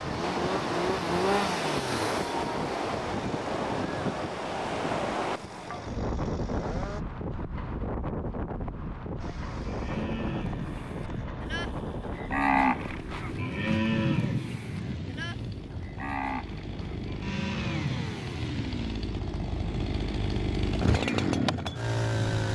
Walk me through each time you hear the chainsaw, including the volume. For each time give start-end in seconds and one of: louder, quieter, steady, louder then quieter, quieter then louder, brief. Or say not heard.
0.0-7.0 quieter
9.2-22.5 louder.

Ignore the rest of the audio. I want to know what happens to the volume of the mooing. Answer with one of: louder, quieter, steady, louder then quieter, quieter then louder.
louder then quieter.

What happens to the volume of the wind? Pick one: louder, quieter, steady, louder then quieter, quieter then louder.
quieter.